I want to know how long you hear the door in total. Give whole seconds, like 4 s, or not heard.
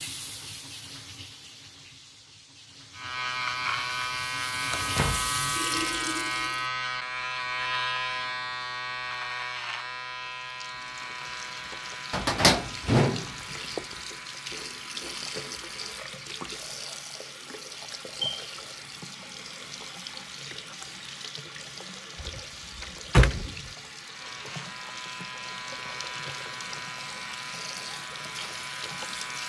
4 s.